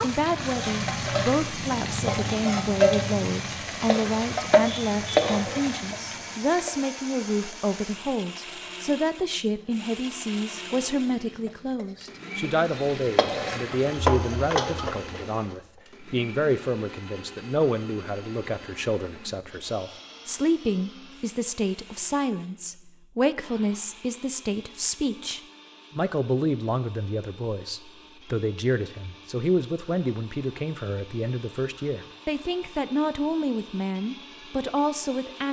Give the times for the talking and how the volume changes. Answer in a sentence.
You can hear the talking from 0.0 to 35.4 s, at a steady volume.